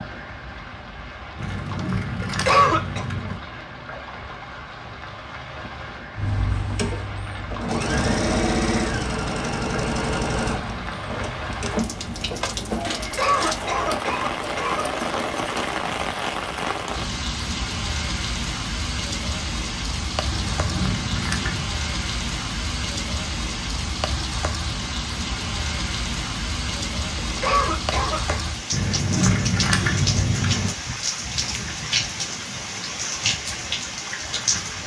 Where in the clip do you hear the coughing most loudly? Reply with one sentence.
The volume of the coughing peaks at 3 seconds.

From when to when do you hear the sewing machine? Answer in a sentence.
You can hear the sewing machine from 6.2 to 15.7 s.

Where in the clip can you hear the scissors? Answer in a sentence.
You can hear the scissors from 1.4 to 3.4 s, from 20.3 to 21.7 s and from 28.7 to 30.8 s.